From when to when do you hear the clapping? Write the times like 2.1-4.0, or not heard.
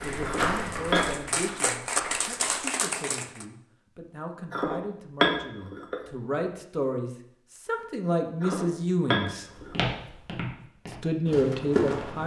0.0-3.5.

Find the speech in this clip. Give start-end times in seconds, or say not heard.
0.0-9.4, 11.0-12.2.